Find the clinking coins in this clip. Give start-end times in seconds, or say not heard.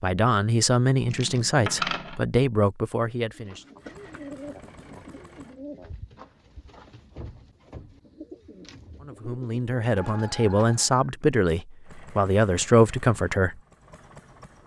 1.1-2.2.